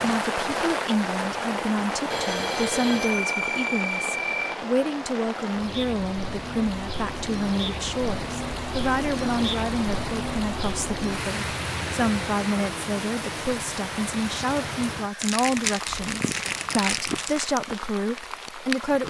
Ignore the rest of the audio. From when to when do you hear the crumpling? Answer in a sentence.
The crumpling can be heard from 15.2 to 17.6 s.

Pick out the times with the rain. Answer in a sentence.
The rain can be heard from 0.0 to 19.0 s.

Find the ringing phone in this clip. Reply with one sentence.
You can hear the ringing phone from 2.1 to 4.5 s.